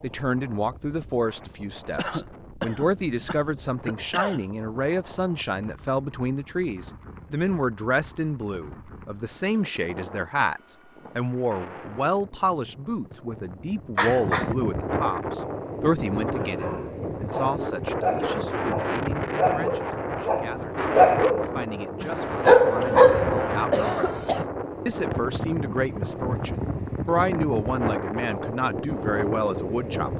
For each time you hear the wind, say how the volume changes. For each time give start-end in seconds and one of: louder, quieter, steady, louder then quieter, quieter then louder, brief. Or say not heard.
0.0-30.1 louder.